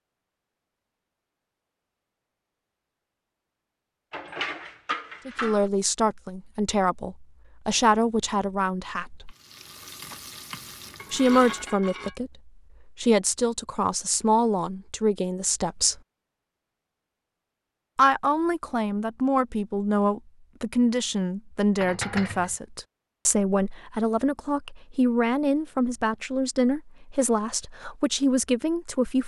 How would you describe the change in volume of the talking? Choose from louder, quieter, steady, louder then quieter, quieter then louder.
steady.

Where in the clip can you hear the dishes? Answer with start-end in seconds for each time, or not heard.
4.1-5.7, 10.9-12.2, 21.8-22.6.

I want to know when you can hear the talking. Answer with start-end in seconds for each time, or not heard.
5.2-9.3, 11.1-16.0, 17.9-29.2.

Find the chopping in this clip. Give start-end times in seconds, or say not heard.
not heard.